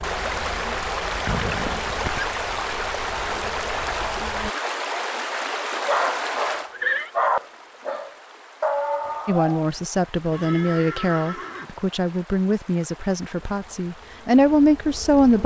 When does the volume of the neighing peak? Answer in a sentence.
The loudest moment of the neighing is at 7 seconds.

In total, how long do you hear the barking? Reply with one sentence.
The barking can be heard for 4 seconds in total.